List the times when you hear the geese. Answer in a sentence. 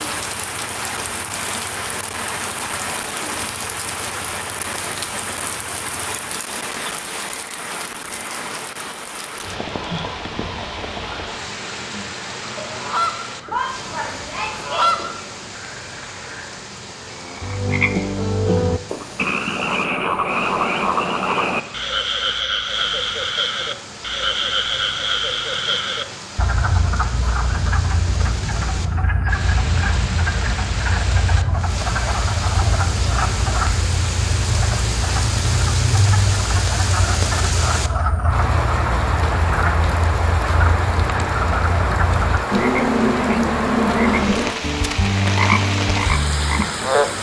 The geese can be heard from 12.6 to 15.2 s.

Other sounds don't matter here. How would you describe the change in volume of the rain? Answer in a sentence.
The volume of the rain goes down, then up.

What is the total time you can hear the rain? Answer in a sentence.
You can hear the rain for 47 seconds altogether.